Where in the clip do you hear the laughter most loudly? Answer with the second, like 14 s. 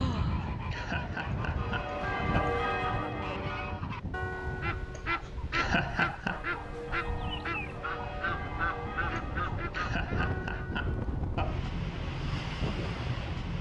6 s.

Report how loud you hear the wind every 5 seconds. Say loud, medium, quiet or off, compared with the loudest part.
loud, medium, loud.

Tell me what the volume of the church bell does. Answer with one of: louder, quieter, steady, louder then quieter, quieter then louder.
quieter.